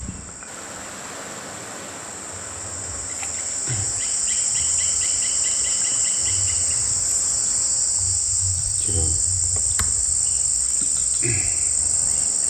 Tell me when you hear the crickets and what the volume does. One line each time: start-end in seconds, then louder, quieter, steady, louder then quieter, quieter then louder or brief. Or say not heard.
0.0-12.4 louder.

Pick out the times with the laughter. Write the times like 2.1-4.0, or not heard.
not heard.